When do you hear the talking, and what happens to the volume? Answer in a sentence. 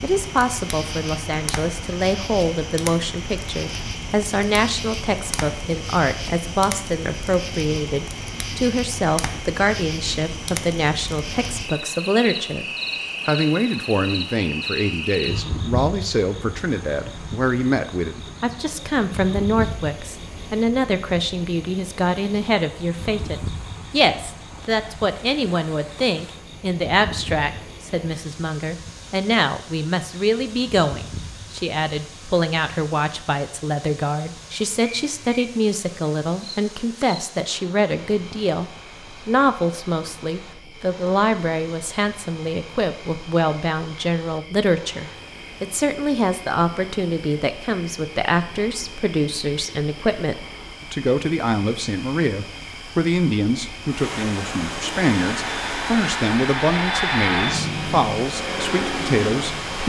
The talking can be heard from 0.0 to 12.7 s, at a steady volume; and from 13.2 to 59.8 s, at a steady volume.